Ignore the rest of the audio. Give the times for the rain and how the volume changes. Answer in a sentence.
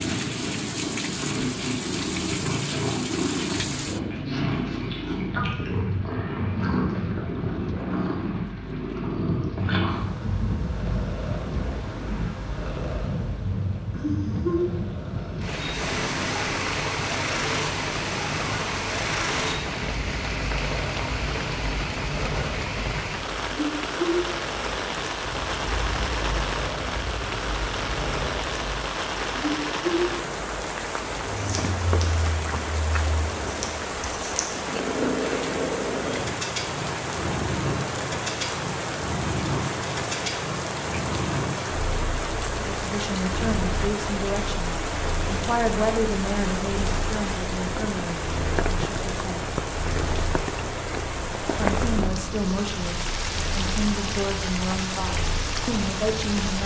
You can hear the rain from 0.0 to 56.6 s, at a steady volume.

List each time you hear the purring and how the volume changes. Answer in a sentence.
The purring can be heard from 0.0 to 56.6 s, getting quieter.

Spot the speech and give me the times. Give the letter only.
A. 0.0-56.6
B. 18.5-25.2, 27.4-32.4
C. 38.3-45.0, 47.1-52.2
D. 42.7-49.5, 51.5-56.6
D.